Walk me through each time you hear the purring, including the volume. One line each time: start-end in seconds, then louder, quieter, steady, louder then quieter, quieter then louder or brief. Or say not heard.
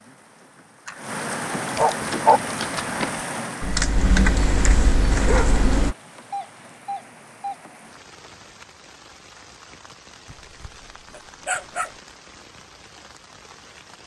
not heard.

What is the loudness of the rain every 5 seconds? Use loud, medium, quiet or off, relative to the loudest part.
loud, quiet, quiet.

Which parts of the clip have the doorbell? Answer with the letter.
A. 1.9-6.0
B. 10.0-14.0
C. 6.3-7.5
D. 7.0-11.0
C.